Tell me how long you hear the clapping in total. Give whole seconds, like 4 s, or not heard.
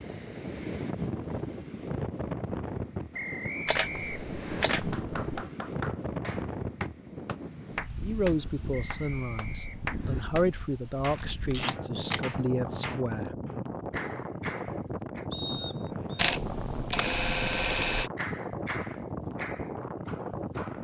13 s.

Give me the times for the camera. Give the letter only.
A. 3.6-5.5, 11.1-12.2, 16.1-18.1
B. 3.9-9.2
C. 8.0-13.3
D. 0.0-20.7
A.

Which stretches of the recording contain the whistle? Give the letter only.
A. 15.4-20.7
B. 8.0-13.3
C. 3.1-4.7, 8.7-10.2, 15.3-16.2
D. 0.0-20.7
C.